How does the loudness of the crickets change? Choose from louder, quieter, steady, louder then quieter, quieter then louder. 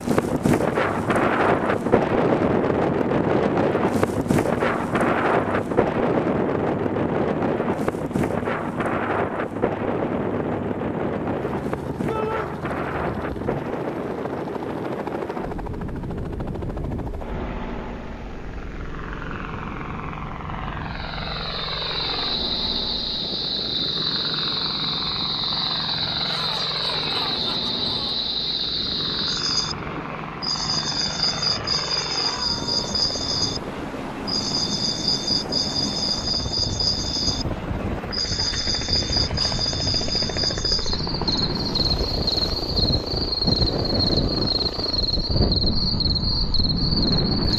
steady.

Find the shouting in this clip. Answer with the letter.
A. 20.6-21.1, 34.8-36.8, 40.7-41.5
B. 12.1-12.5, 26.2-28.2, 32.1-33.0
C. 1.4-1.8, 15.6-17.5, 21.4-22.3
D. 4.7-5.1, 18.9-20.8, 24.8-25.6
B.